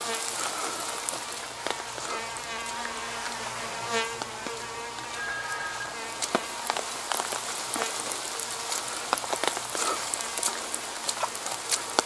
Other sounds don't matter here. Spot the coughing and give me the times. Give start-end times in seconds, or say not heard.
not heard.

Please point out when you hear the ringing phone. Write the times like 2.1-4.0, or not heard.
5.1-6.0.